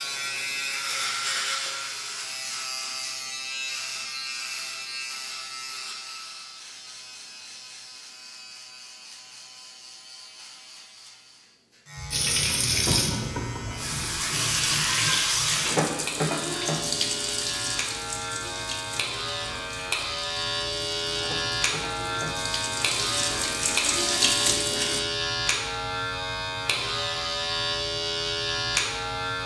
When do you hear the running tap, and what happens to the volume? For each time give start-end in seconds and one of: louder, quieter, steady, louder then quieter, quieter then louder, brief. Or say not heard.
12.1-25.0 quieter then louder.